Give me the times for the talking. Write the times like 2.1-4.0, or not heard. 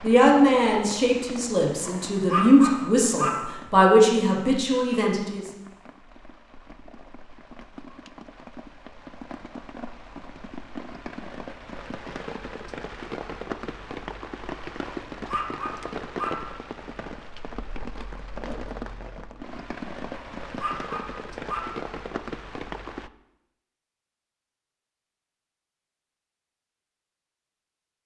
0.0-5.4.